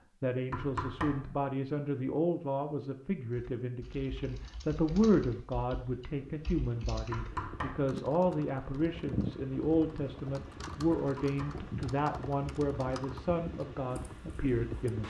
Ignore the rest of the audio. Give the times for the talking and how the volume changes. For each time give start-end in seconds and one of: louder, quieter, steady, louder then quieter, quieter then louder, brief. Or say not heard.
0.2-15.0 steady.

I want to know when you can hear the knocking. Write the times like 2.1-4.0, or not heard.
0.5-1.3, 7.1-7.9, 10.9-11.7.